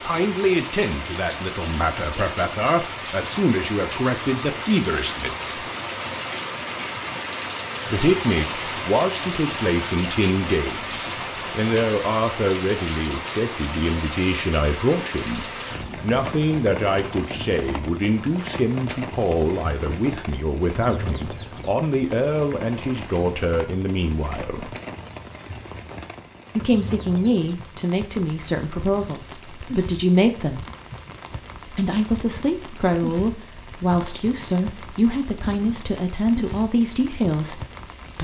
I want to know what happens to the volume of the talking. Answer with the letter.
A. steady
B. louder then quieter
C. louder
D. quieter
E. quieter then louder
A.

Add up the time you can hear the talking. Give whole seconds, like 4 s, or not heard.
33 s.